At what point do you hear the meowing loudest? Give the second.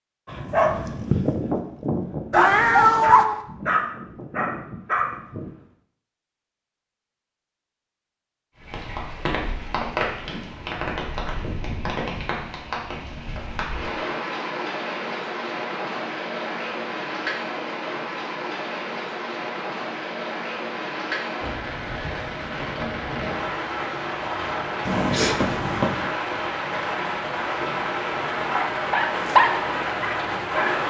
3 s.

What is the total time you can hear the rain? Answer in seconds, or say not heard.
22 s.